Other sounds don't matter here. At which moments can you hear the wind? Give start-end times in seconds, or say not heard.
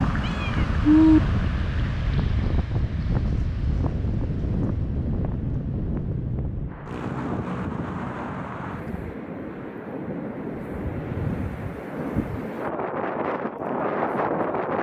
0.0-14.7.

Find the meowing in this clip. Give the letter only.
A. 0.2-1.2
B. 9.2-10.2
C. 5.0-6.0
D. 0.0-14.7
A.